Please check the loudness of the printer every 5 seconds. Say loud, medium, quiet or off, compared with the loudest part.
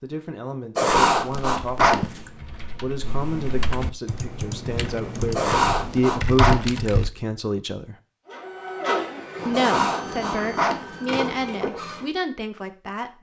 off, loud, loud.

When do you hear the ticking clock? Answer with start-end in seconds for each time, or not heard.
not heard.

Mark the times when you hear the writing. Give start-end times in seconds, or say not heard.
0.8-2.2, 5.3-6.5, 9.5-10.8.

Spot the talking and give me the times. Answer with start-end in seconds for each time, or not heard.
0.0-8.0, 9.4-13.1.